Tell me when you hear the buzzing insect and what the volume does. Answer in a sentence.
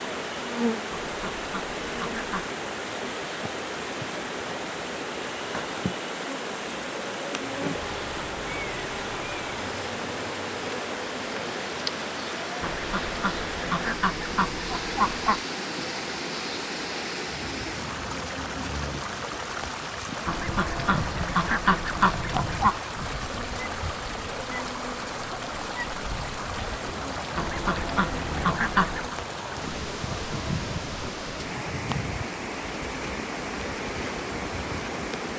The buzzing insect can be heard from 0.0 to 35.3 s, at a steady volume.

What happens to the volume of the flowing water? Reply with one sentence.
The volume of the flowing water stays about the same.